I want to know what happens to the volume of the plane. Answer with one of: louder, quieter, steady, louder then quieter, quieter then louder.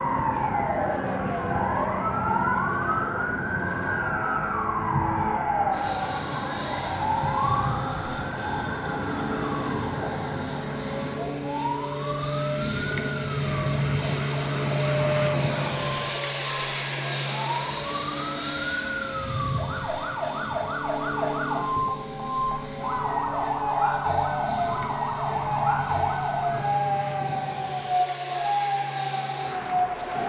louder then quieter.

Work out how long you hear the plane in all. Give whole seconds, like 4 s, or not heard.
30 s.